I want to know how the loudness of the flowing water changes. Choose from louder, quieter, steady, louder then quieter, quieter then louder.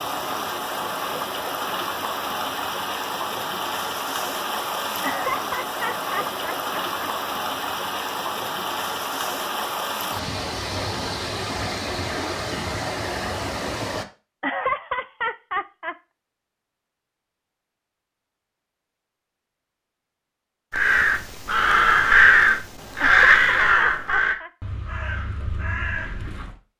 steady.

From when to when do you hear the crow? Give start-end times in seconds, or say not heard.
20.7-26.6.